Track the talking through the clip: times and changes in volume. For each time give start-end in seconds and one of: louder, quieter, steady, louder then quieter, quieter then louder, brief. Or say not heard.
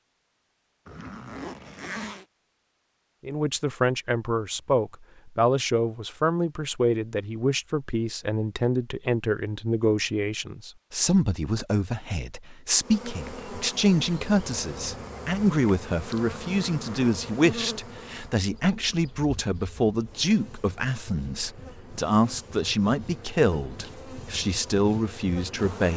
3.2-25.9 steady.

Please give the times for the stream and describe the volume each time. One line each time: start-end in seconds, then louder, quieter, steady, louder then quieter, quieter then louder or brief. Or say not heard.
not heard.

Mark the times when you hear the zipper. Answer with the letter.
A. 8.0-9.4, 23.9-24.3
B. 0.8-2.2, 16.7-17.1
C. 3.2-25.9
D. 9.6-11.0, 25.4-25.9
B.